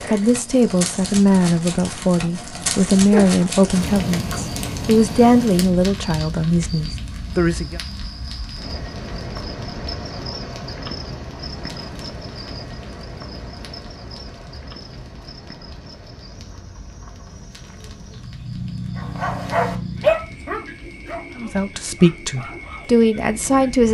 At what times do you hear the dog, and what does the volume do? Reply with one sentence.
The dog can be heard from 18.9 to 23.8 s, getting quieter.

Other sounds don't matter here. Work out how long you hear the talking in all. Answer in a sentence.
You can hear the talking for 10 seconds altogether.